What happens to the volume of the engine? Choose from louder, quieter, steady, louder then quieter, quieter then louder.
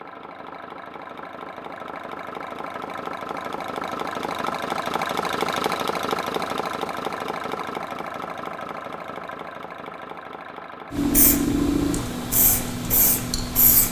louder then quieter.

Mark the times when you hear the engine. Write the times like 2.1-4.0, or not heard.
0.0-13.8.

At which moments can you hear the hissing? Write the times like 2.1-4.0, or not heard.
10.9-13.8.